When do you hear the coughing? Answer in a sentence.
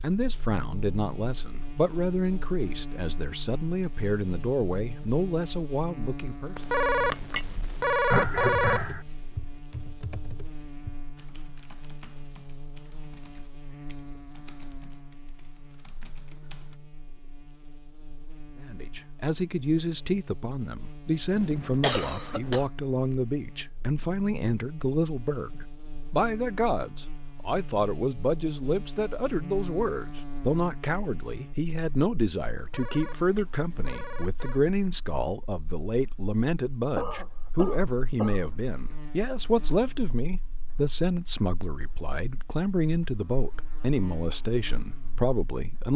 The coughing can be heard from 8.1 to 9.0 s, from 21.4 to 22.7 s and from 37.0 to 38.5 s.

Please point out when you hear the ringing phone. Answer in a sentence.
You can hear the ringing phone from 6.5 to 8.9 s and from 32.5 to 34.6 s.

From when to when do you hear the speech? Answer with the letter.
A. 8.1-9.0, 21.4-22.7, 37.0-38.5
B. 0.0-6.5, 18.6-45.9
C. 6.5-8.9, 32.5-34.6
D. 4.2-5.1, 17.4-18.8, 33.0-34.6
B.